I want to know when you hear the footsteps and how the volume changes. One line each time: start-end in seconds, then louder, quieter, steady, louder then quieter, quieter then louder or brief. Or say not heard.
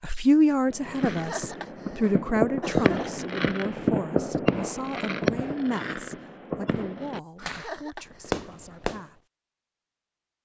not heard.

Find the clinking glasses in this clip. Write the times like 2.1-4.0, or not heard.
not heard.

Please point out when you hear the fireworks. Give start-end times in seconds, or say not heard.
0.7-9.1.